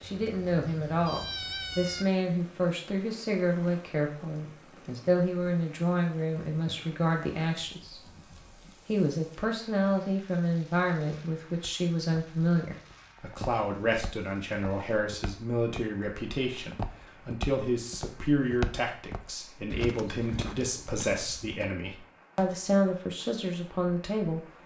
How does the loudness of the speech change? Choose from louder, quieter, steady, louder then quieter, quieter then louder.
steady.